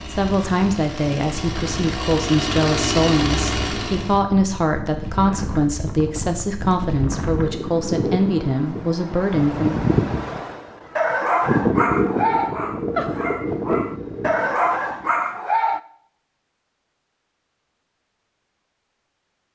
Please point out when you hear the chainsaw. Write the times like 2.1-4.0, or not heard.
0.0-4.2.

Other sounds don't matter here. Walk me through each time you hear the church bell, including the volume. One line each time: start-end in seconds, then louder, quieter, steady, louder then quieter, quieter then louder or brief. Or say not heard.
not heard.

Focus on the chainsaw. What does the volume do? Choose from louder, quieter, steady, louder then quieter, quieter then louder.
louder.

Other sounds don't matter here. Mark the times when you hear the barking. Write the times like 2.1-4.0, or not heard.
10.9-15.8.